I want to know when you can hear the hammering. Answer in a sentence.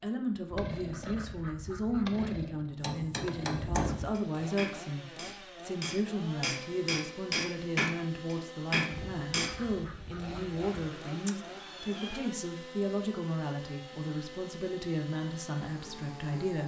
You can hear the hammering from 2.8 to 9.6 s.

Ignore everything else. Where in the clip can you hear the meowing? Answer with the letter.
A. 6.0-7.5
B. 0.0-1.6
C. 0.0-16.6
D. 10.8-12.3
D.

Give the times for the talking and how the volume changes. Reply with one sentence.
You can hear the talking from 0.0 to 16.6 s, at a steady volume.